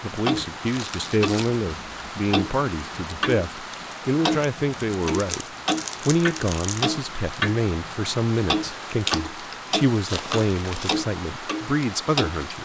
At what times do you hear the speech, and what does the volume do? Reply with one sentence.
You can hear the speech from 0.0 to 12.6 s, at a steady volume.